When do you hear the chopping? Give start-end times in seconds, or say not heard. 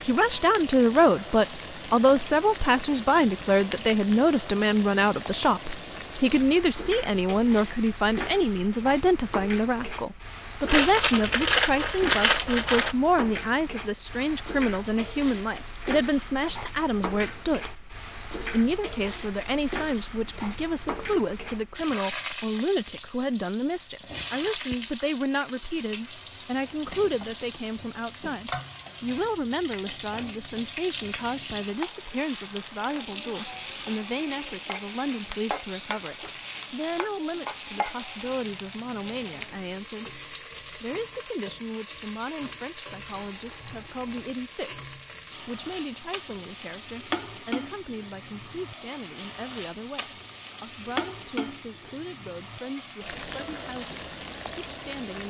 not heard.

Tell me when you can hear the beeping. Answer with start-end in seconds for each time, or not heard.
43.1-44.3.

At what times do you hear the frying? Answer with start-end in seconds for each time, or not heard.
0.0-55.2.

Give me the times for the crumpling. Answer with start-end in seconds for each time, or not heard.
10.7-12.9.